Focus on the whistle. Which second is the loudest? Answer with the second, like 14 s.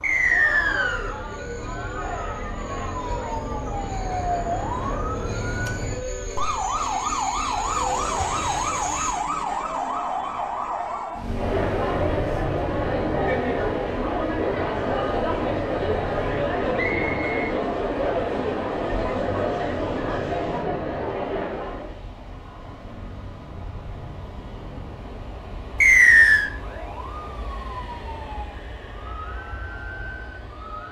26 s.